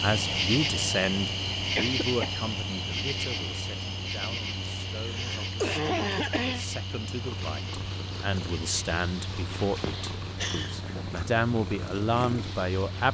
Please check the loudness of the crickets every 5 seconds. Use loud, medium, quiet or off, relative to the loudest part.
loud, medium, off.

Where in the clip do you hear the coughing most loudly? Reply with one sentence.
The volume of the coughing peaks at 6 seconds.